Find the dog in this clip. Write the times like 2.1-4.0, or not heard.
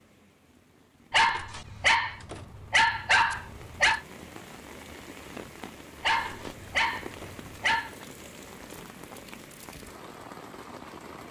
1.1-4.0, 6.0-8.1.